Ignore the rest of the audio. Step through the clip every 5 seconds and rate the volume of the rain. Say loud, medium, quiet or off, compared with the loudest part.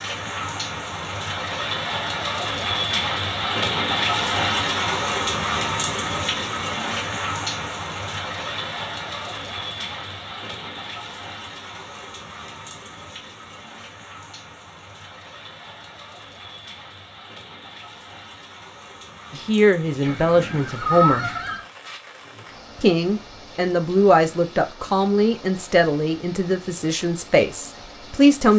loud, loud, quiet, quiet, quiet, quiet.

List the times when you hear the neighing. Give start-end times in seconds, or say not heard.
20.0-21.6.